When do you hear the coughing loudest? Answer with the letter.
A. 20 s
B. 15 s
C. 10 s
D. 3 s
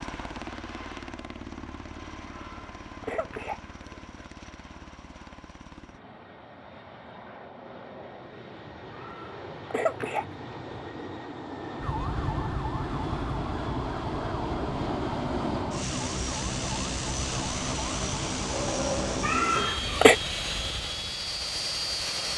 A.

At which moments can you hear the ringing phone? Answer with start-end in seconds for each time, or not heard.
18.5-19.3.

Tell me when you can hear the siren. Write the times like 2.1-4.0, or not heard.
11.8-19.4.